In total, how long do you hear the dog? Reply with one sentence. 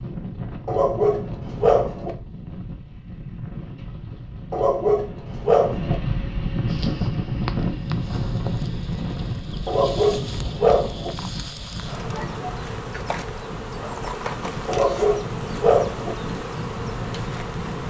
The dog can be heard for 6 seconds in total.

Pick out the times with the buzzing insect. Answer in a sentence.
You can hear the buzzing insect from 6.7 to 17.8 s.